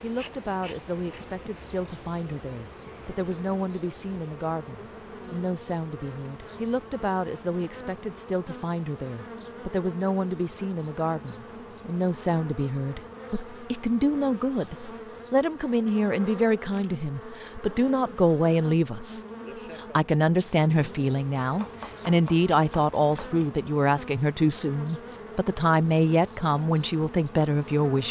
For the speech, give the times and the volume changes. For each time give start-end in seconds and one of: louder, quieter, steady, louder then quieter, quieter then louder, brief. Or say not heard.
0.0-28.0 louder.